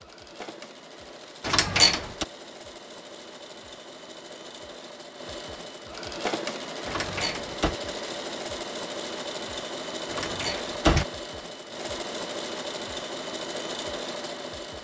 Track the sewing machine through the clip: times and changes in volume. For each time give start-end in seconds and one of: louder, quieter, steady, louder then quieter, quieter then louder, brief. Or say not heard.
0.0-14.7 louder.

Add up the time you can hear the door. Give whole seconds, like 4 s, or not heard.
3 s.